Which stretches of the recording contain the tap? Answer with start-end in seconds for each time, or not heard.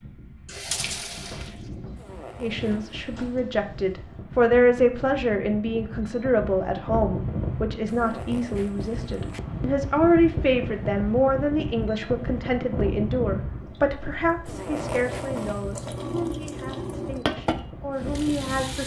0.0-4.0, 13.6-18.8.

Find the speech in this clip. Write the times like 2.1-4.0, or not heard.
2.4-18.8.